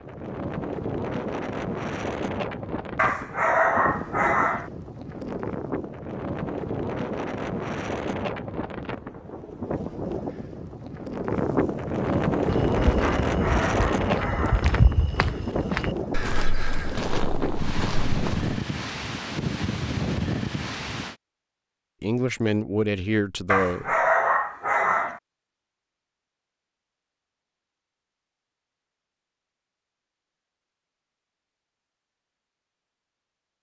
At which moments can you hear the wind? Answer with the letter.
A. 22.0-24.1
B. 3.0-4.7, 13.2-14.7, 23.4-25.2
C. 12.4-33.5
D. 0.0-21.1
D.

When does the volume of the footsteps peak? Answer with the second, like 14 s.
15 s.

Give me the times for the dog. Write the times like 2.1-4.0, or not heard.
3.0-4.7, 13.2-14.7, 23.4-25.2.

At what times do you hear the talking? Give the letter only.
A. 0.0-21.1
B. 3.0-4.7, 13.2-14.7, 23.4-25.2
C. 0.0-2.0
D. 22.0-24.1
D.